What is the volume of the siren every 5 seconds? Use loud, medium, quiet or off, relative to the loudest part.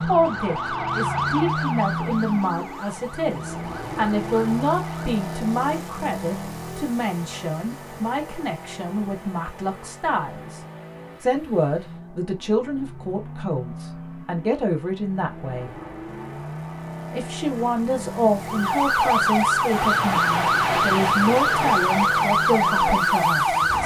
medium, off, off, loud, loud.